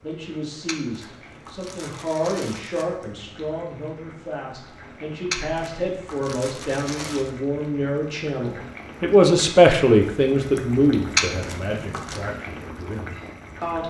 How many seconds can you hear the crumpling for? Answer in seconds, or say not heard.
5 s.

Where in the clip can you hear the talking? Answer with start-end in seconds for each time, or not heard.
0.0-13.8.